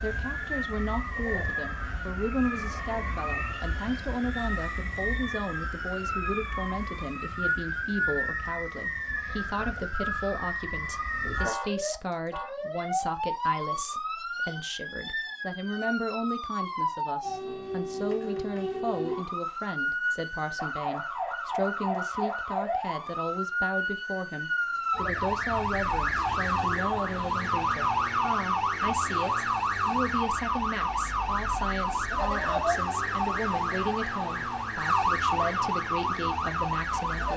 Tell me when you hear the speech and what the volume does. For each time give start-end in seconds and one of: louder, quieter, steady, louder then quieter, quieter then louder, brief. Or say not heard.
0.0-37.3 steady.